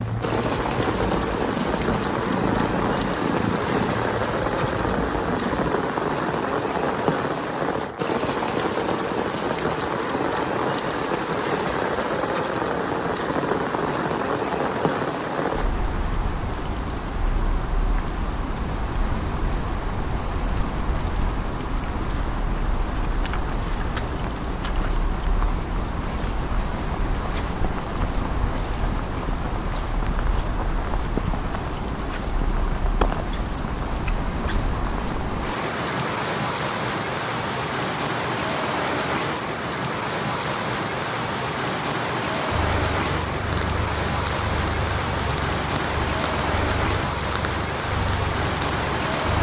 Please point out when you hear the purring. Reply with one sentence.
The purring can be heard from 0.0 to 5.7 s and from 42.5 to 49.3 s.